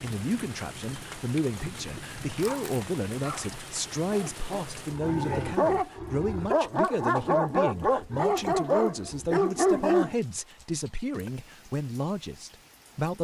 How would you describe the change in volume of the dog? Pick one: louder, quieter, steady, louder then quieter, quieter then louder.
louder.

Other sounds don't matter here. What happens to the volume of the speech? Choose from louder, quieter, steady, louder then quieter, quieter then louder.
steady.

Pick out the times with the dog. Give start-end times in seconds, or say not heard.
2.4-10.2.